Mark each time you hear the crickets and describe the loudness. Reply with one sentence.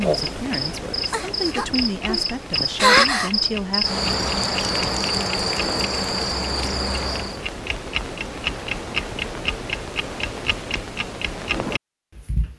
You can hear the crickets from 0.0 to 7.4 s, getting louder then quieter.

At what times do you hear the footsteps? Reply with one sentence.
The footsteps can't be heard in this clip.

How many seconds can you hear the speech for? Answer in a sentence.
The speech can be heard for 4 seconds in total.